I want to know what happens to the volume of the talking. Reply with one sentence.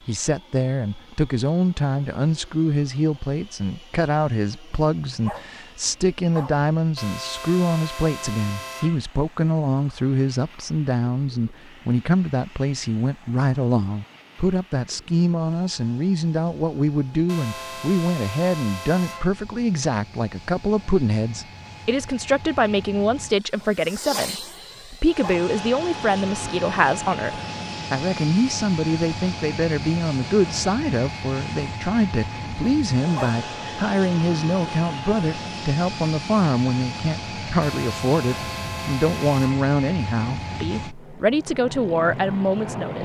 The loudness of the talking stays about the same.